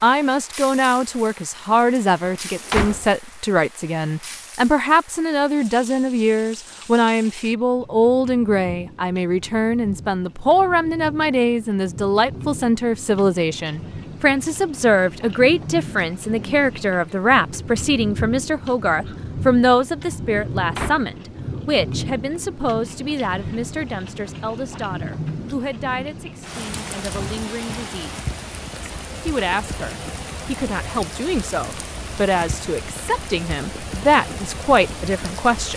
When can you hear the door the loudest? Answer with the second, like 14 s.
3 s.